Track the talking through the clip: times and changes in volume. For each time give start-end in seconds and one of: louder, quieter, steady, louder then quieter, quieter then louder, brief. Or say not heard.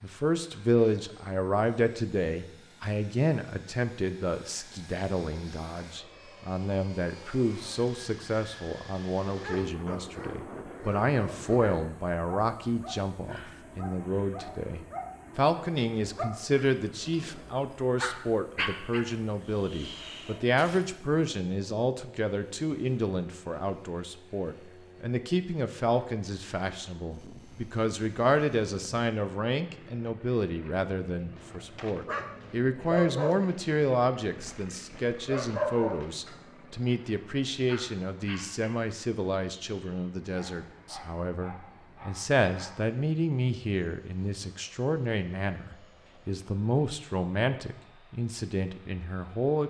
0.0-49.6 steady.